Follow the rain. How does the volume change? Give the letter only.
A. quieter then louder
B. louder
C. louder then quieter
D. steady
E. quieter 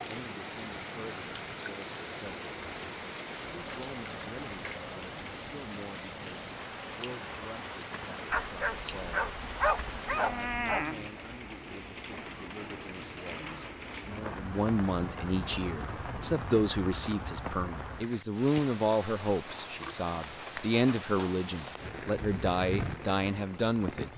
D.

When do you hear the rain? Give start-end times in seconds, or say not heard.
0.0-24.1.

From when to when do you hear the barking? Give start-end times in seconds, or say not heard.
8.2-10.8.